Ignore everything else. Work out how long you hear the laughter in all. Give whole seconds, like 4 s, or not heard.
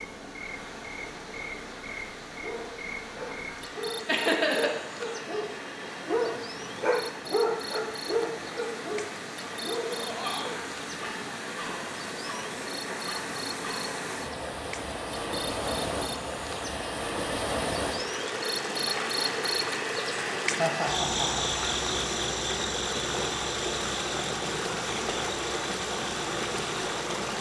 2 s.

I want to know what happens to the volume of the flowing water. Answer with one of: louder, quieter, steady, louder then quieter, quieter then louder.
louder.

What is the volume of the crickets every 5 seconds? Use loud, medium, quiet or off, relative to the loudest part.
medium, medium, medium, loud, loud, medium.